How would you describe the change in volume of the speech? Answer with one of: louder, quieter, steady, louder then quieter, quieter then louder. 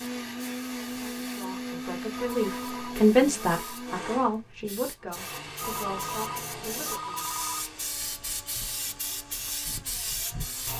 louder then quieter.